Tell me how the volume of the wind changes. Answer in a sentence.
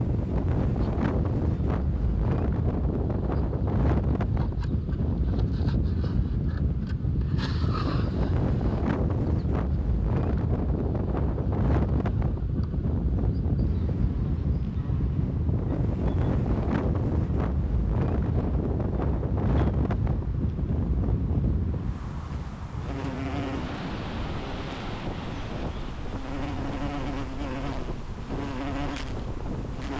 The volume of the wind goes down.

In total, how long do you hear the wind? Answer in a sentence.
The wind can be heard for 30 seconds in total.